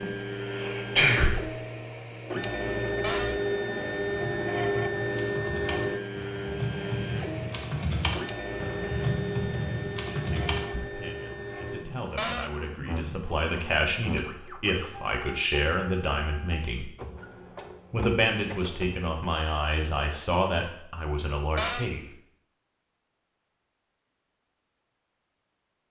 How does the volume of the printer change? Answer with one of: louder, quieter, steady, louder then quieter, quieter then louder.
quieter.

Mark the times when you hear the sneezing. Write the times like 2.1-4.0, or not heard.
0.0-1.4.